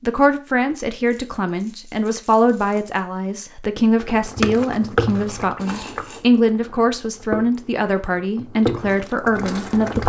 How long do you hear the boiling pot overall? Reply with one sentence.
You can hear the boiling pot for 6 seconds altogether.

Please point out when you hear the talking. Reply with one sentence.
The talking can be heard from 0.0 to 10.0 s.